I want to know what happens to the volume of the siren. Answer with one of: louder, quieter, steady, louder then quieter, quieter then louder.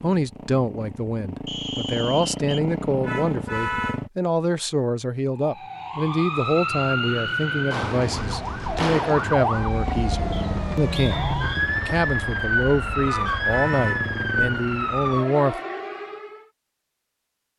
steady.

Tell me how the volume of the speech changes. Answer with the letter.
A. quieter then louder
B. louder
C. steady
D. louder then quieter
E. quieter
C.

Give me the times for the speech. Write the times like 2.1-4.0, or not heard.
0.0-15.6.